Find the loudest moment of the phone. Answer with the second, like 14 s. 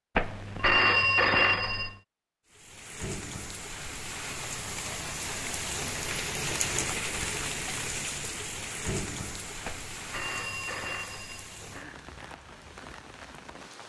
1 s.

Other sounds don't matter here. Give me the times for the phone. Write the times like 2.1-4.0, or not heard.
0.1-1.9, 9.7-11.8.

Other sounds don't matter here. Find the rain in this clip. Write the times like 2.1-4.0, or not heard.
2.5-13.8.